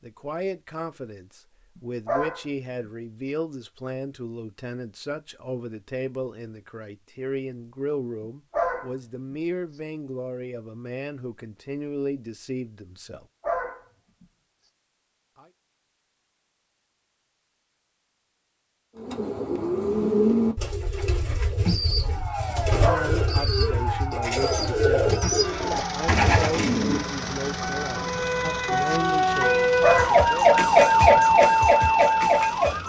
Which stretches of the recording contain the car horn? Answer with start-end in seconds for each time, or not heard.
not heard.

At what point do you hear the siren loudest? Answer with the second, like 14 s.
31 s.